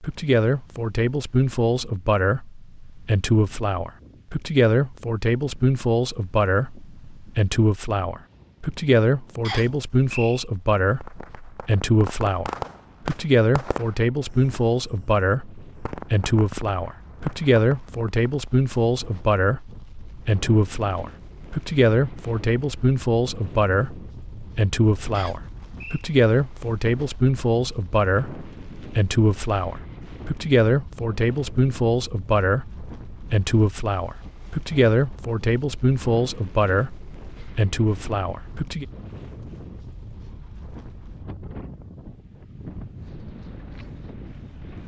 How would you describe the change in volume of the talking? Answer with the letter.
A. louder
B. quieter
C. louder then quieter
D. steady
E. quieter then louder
D.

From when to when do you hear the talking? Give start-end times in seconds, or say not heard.
0.0-38.9.